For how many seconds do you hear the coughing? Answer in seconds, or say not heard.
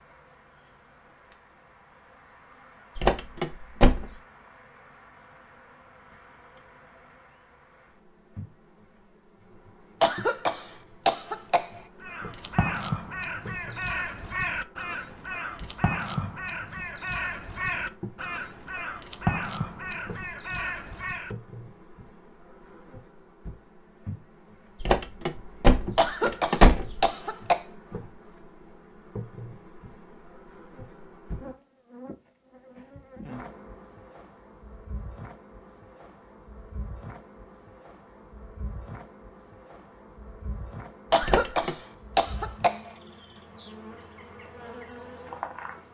5 s.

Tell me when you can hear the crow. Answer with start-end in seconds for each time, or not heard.
12.0-21.4.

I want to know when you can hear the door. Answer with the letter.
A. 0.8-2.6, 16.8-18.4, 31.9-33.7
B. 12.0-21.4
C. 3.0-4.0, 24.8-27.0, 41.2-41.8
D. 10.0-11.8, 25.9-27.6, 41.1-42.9
C.